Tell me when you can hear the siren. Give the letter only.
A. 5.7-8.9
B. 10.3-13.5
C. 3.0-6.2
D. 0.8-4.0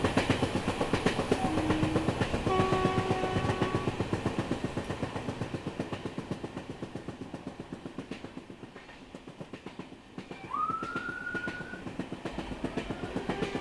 B.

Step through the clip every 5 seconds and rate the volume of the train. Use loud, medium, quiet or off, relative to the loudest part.
loud, medium, medium.